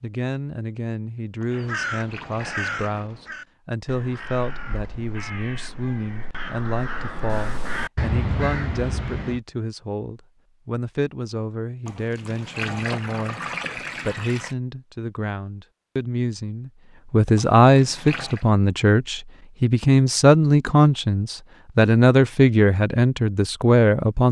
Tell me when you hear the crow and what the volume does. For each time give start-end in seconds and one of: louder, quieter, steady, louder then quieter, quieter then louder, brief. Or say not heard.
1.5-9.4 quieter then louder.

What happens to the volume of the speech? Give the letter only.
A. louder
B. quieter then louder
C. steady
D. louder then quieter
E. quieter
A.